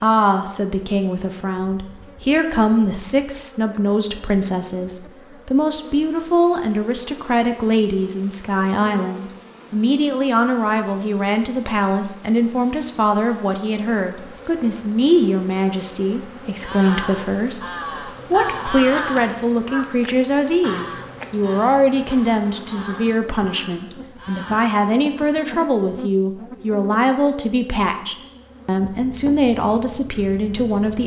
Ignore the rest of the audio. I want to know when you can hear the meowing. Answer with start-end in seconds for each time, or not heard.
not heard.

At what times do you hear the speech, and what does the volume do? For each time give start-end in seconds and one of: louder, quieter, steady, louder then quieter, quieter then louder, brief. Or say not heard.
0.0-31.0 steady.